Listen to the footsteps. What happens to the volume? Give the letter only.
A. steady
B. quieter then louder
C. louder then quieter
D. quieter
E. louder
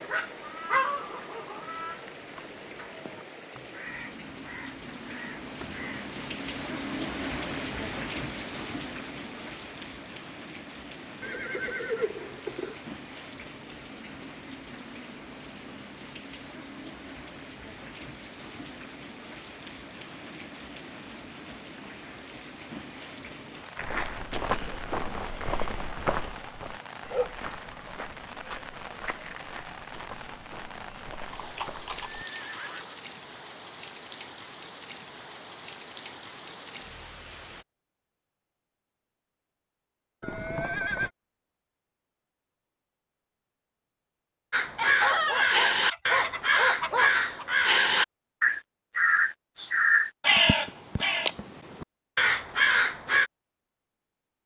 D.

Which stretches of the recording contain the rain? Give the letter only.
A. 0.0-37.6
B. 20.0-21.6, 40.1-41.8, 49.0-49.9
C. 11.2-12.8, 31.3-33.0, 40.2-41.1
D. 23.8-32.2
A.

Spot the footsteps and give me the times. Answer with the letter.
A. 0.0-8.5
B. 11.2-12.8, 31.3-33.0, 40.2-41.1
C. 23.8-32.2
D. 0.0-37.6
C.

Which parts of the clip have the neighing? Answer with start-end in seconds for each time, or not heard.
11.2-12.8, 31.3-33.0, 40.2-41.1.